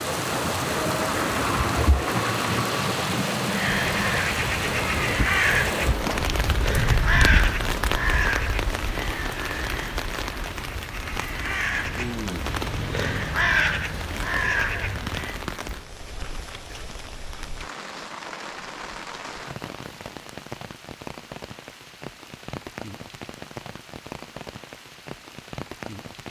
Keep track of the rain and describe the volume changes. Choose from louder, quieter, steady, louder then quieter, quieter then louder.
quieter.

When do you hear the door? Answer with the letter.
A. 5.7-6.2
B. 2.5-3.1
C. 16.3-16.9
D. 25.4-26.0
A.